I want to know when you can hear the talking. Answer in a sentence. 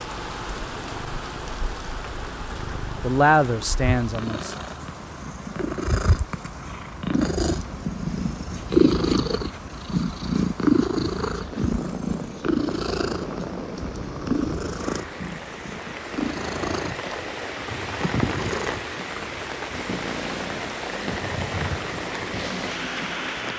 The talking can be heard from 3.0 to 4.5 s.